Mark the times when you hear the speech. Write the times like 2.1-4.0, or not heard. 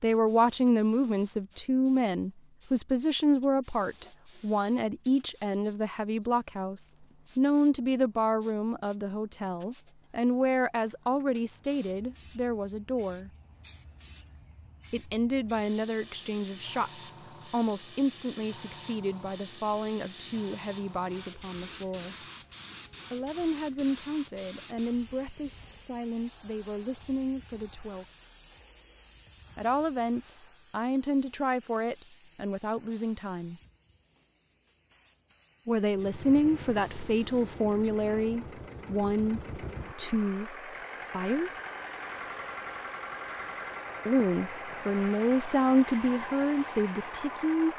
0.0-13.3, 14.9-22.1, 23.1-28.1, 29.6-33.5, 35.6-41.5, 44.0-47.7.